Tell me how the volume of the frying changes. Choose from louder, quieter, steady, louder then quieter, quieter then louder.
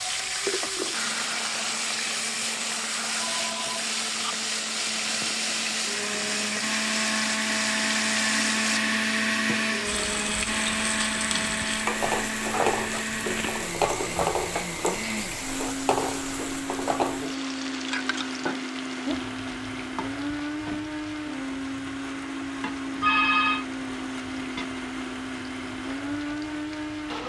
quieter.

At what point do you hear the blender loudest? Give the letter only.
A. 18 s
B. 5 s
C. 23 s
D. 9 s
D.